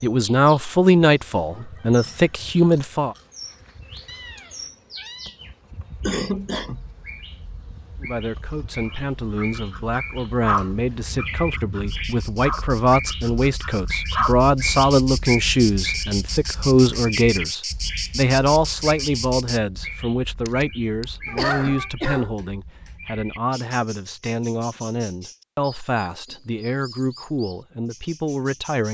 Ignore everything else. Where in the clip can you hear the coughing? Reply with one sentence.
You can hear the coughing from 6.0 to 6.8 s and from 20.4 to 22.4 s.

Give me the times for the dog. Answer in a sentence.
You can hear the dog from 9.3 to 14.4 s.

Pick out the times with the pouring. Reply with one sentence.
You can't hear the pouring here.